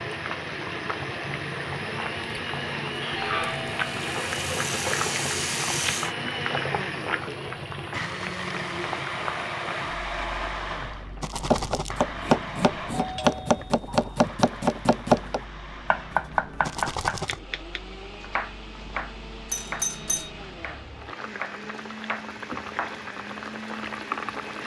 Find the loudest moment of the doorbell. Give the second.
20 s.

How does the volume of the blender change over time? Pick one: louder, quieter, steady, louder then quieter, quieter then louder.
quieter.